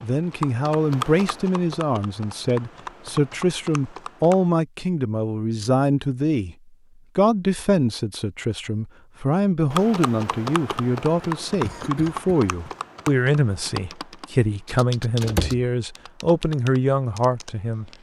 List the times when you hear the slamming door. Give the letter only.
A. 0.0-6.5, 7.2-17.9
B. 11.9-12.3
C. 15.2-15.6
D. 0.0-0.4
C.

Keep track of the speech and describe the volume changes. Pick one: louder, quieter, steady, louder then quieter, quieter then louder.
steady.